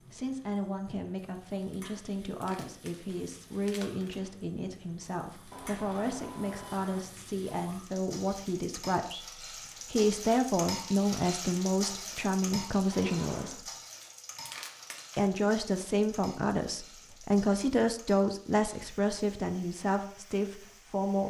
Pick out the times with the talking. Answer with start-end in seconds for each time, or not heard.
0.1-13.7, 15.2-21.2.